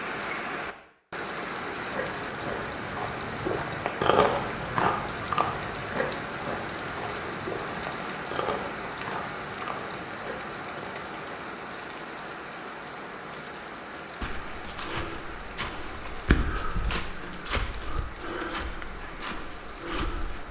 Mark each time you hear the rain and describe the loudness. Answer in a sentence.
You can hear the rain from 0.0 to 20.4 s, getting quieter.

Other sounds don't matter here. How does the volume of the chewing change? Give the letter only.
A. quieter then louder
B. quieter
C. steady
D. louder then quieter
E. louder
D.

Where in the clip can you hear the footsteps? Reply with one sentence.
The footsteps can be heard from 14.2 to 20.4 s.